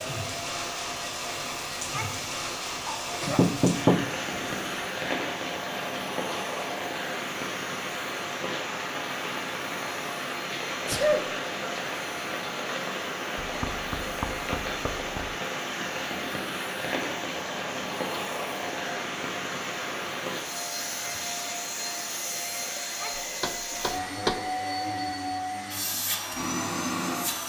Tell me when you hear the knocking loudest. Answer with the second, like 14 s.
4 s.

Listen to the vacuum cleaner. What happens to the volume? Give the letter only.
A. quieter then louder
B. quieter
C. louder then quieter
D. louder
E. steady
D.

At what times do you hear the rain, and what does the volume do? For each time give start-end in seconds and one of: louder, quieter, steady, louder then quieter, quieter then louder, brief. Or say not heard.
0.0-22.8 steady.